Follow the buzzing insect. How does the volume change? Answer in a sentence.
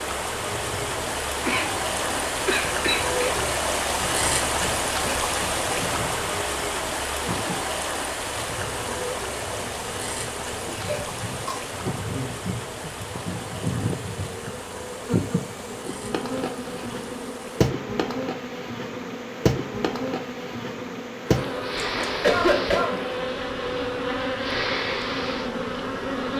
The volume of the buzzing insect goes up.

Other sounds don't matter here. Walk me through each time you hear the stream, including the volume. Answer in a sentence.
The stream can be heard from 0.0 to 26.3 s, getting quieter.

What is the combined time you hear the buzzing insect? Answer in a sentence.
The buzzing insect can be heard for 26 seconds in total.